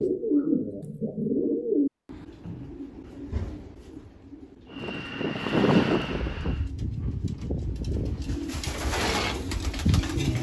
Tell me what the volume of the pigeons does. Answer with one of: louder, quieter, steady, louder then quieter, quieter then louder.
quieter then louder.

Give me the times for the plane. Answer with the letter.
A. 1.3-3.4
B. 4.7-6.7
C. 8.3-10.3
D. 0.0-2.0
B.